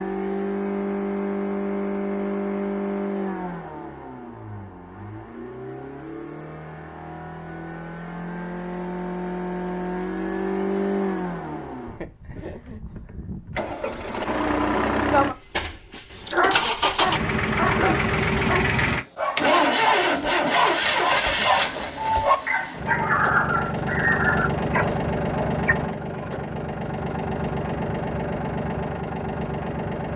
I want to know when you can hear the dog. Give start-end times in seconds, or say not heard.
16.1-25.8.